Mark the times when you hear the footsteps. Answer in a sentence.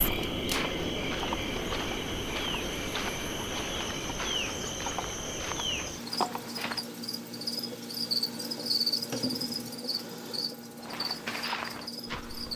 The footsteps can be heard from 0.0 to 6.8 s and from 10.8 to 12.5 s.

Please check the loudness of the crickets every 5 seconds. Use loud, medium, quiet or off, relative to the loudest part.
loud, loud, medium.